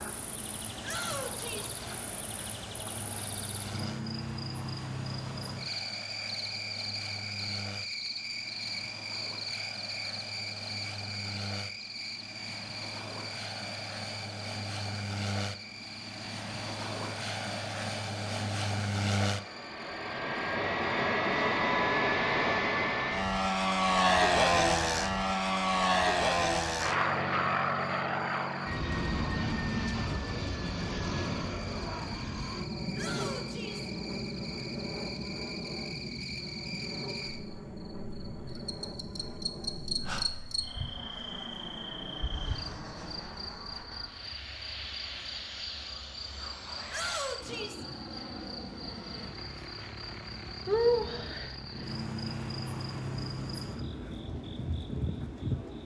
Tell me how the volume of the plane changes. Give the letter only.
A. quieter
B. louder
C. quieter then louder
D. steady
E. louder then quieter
E.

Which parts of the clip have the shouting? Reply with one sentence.
The shouting can be heard from 0.8 to 1.8 s, from 33.0 to 33.9 s and from 46.9 to 47.9 s.